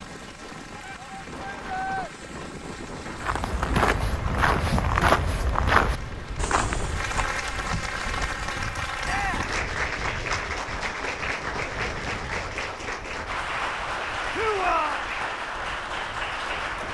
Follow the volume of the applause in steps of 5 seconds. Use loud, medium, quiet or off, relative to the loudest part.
quiet, loud, loud, loud.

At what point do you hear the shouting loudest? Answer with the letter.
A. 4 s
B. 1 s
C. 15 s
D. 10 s
C.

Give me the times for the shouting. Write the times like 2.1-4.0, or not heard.
0.8-2.1, 9.1-9.6, 14.3-15.0.